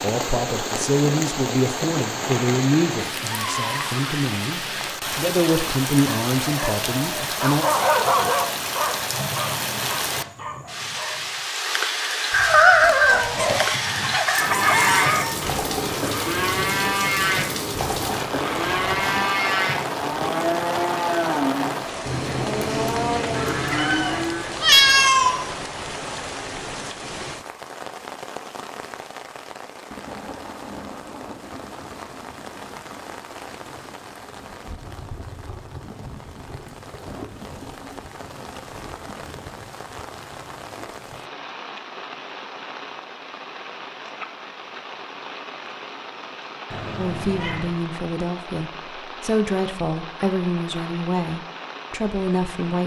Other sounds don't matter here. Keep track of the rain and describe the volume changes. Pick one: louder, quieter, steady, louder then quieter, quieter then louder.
quieter.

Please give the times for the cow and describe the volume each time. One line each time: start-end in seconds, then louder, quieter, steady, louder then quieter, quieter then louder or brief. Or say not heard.
14.2-24.6 steady.